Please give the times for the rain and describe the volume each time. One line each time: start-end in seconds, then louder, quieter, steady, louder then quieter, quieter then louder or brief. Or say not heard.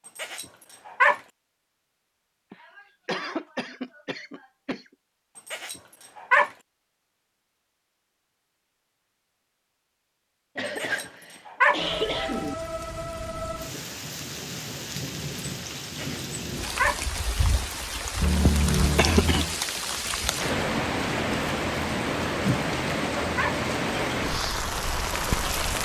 11.8-25.8 louder.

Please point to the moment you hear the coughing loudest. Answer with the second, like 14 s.
19 s.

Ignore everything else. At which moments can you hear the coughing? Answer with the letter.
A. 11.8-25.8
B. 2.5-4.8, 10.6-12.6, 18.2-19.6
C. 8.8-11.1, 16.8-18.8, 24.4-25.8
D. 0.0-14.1
B.